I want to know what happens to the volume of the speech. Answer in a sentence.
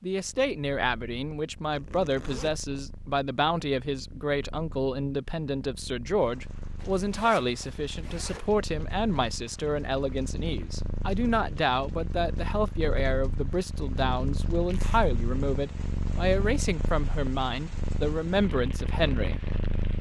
The volume of the speech stays about the same.